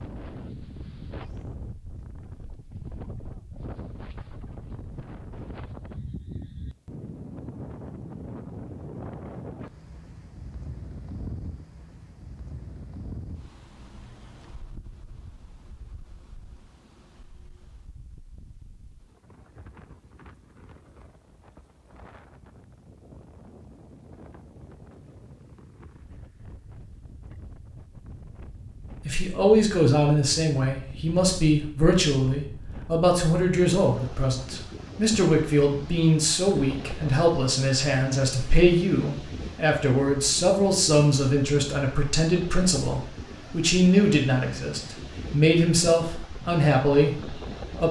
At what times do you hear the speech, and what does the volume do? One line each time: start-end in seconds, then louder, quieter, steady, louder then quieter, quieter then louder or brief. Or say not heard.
29.1-47.8 steady.